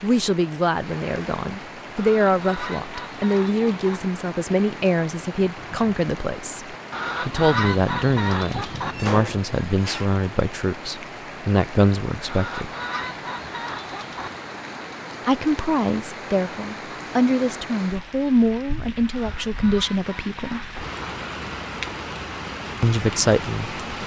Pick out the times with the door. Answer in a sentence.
The door can be heard from 8.8 to 10.1 s.